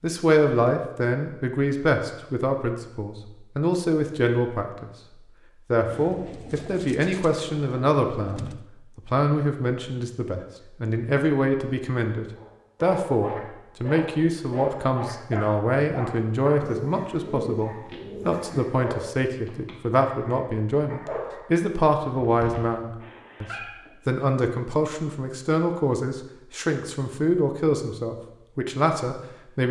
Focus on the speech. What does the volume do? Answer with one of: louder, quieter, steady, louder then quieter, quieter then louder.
steady.